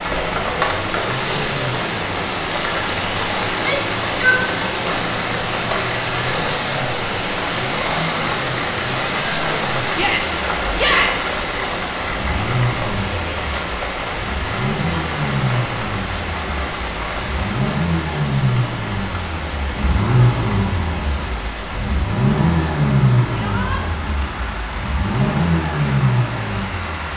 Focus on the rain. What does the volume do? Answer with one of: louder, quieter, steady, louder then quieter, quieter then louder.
quieter.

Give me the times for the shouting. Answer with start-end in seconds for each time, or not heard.
3.5-4.5, 9.9-11.3, 23.3-23.8.